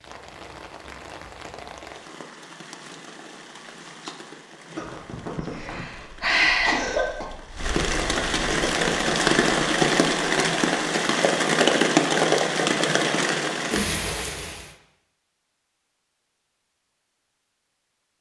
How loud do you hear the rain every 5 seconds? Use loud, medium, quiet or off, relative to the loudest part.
quiet, loud, loud, off.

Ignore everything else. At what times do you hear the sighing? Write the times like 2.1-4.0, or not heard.
5.5-6.8.